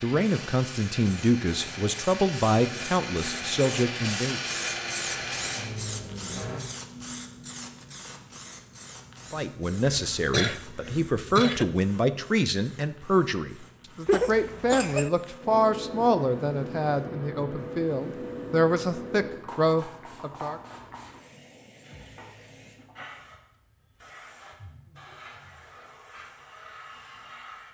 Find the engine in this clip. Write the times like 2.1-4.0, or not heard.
0.0-6.6.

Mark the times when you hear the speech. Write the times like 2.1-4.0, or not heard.
0.0-4.5, 9.3-20.6.